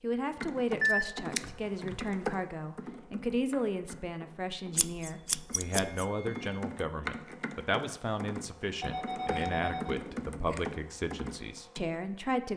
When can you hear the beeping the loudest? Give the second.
1 s.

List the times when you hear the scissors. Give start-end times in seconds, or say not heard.
0.8-1.9, 4.8-6.0, 9.1-10.8.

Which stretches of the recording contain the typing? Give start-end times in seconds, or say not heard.
0.2-11.8.